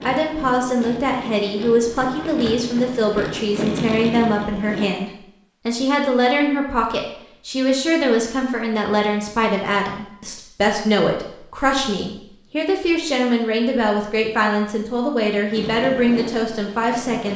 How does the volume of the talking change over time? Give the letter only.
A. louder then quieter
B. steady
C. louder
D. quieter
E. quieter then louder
B.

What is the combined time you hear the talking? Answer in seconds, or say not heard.
17 s.